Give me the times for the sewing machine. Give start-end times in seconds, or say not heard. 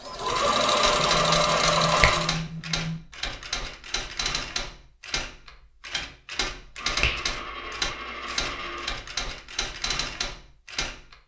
0.0-2.4.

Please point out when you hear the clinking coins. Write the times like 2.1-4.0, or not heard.
0.2-2.4, 6.8-9.0.